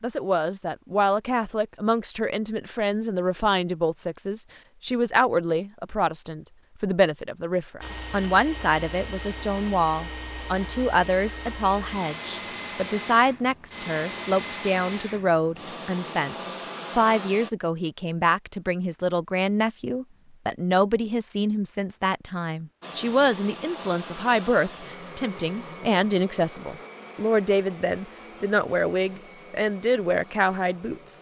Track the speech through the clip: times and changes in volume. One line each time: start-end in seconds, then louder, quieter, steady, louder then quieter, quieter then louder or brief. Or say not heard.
0.0-31.1 steady.